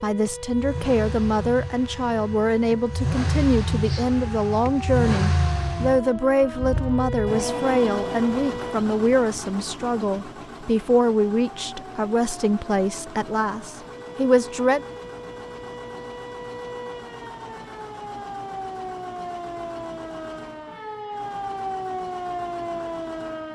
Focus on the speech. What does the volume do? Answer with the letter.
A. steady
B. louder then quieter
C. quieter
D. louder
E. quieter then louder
A.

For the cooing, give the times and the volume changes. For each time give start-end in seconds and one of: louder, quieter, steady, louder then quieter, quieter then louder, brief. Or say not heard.
not heard.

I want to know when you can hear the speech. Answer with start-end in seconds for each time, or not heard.
0.0-14.8.